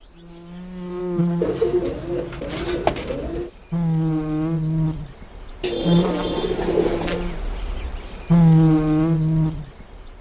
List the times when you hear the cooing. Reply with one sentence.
You can hear the cooing from 1.4 to 3.5 s and from 5.6 to 7.2 s.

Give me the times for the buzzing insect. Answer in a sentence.
You can hear the buzzing insect from 0.0 to 10.1 s.